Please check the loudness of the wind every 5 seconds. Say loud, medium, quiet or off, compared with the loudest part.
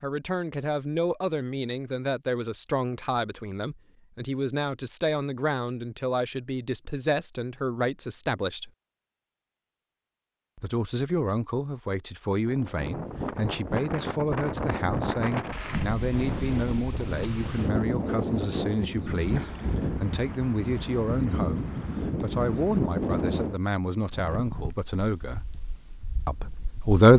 off, off, loud, loud, loud, quiet.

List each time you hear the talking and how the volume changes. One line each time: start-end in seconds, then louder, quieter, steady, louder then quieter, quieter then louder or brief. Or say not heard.
0.0-8.7 steady
10.6-25.5 steady
26.2-27.1 brief.